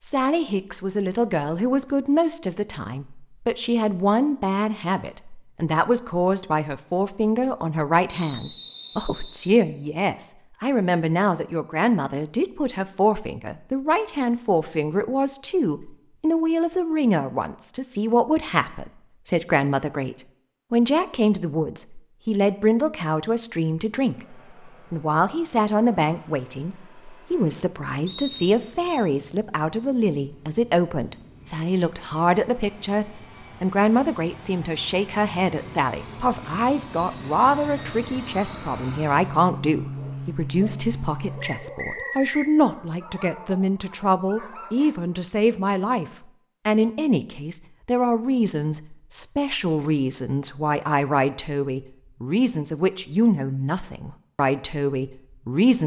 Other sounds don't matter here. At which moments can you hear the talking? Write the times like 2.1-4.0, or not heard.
0.0-46.0, 46.6-55.8.